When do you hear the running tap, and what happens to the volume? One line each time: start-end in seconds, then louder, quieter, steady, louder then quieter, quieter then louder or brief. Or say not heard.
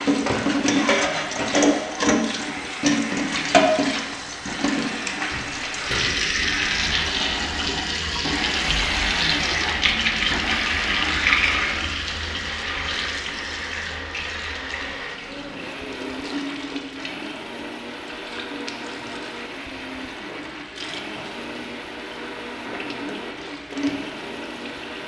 0.0-25.0 quieter.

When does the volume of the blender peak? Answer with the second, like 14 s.
9 s.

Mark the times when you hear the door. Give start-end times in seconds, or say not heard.
5.3-6.1.